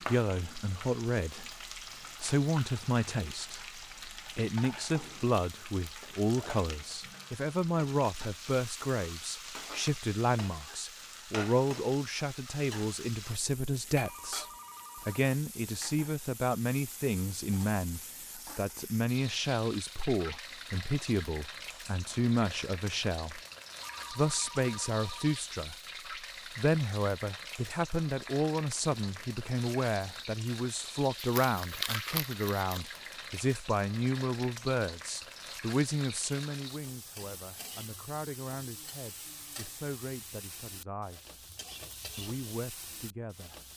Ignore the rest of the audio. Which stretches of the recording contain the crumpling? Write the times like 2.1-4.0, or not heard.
31.1-32.8.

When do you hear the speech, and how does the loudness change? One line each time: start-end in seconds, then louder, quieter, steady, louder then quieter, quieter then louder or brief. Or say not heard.
0.1-23.4 steady
24.1-25.8 brief
26.6-41.4 quieter
42.1-43.6 brief.